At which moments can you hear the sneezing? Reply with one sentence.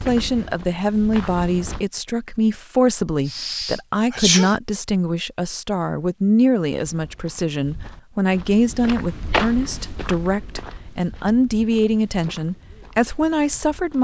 The sneezing can be heard from 3.2 to 4.5 s.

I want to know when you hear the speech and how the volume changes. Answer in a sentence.
You can hear the speech from 0.0 to 13.9 s, at a steady volume.